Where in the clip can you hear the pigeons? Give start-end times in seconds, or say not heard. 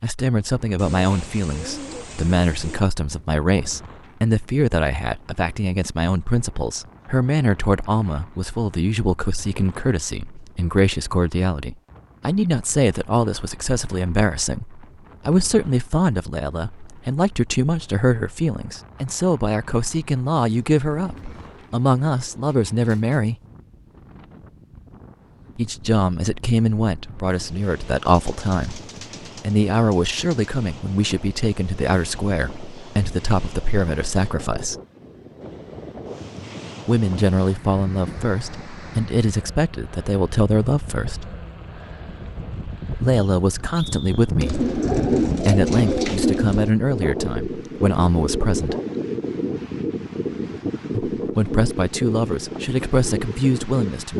0.8-2.8, 20.4-23.3, 28.1-30.5, 44.4-46.7.